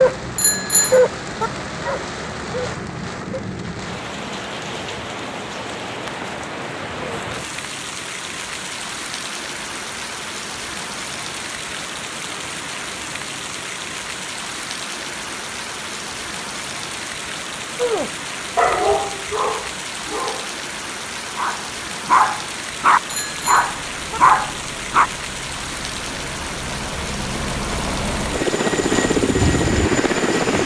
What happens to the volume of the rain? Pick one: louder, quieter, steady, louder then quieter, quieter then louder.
steady.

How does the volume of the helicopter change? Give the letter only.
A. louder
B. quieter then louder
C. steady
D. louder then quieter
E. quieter
A.